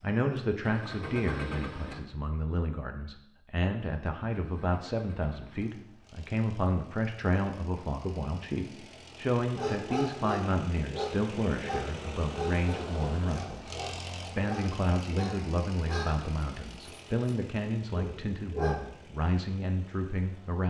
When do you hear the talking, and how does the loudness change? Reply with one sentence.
You can hear the talking from 0.0 to 20.6 s, at a steady volume.